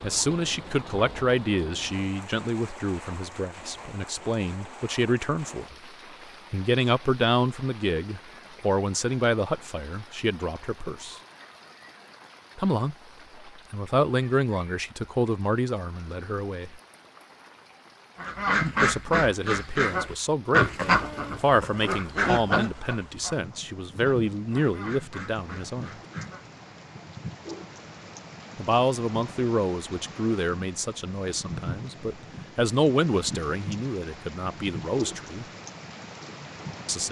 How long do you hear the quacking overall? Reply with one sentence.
The quacking can be heard for 8 seconds in total.